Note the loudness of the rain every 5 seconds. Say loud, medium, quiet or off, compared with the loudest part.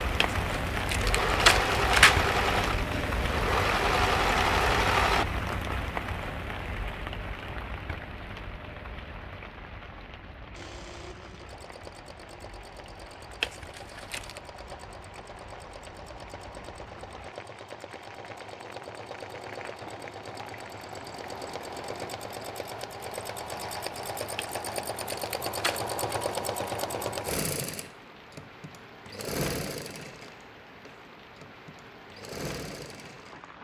loud, medium, quiet, quiet, quiet, quiet, quiet.